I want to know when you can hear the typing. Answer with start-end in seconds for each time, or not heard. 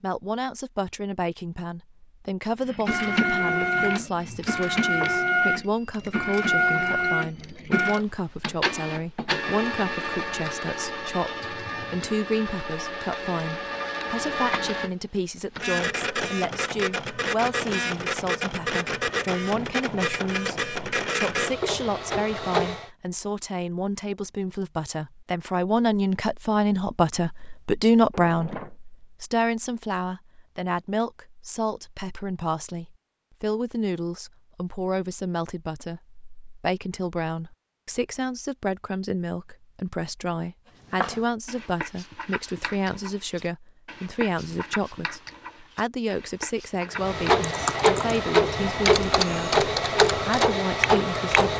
47.4-51.3.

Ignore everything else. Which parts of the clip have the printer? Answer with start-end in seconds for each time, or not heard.
2.6-22.9, 46.9-51.5.